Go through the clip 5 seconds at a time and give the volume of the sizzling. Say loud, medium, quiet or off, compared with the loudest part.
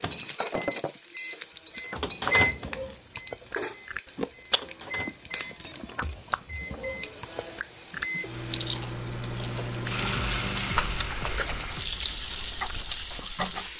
medium, medium, loud.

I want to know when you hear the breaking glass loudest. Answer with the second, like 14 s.
1 s.